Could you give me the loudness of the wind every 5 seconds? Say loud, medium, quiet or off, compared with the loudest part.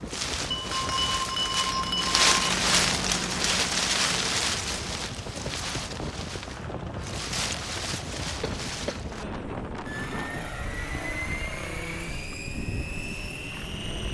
loud, medium, quiet.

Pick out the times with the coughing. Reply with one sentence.
You can hear the coughing from 8.4 to 9.1 s.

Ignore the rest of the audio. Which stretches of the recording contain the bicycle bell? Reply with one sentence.
You can hear the bicycle bell from 0.5 to 2.2 s.